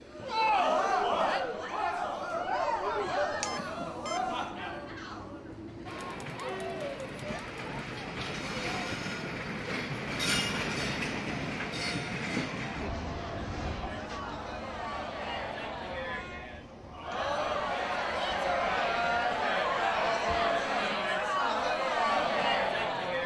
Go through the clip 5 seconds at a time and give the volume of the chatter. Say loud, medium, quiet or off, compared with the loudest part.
loud, quiet, quiet, loud, loud.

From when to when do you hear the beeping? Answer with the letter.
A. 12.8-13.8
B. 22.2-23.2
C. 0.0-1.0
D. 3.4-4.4
D.